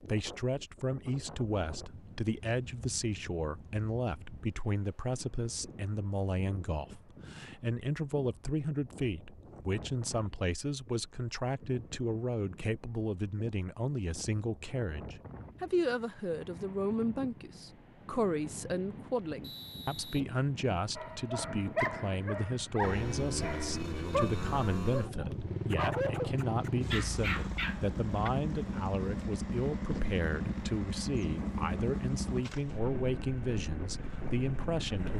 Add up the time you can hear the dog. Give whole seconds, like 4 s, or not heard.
7 s.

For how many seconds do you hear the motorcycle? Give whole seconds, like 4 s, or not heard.
12 s.